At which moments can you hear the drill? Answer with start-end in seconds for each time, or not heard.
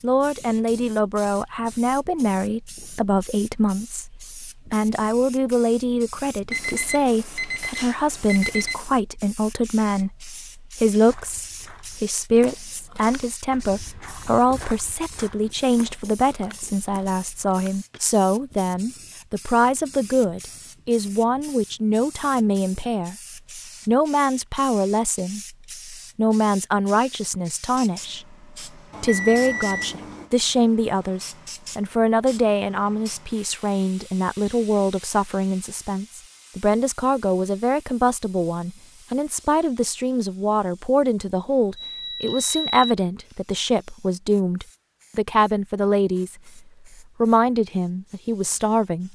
not heard.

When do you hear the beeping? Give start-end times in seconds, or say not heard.
6.5-8.8, 28.9-30.3, 41.8-43.0.